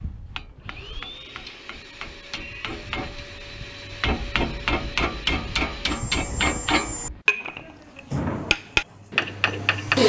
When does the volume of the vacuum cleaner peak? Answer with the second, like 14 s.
10 s.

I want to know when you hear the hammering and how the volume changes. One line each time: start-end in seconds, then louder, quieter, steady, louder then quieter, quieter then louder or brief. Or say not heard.
0.0-10.0 louder.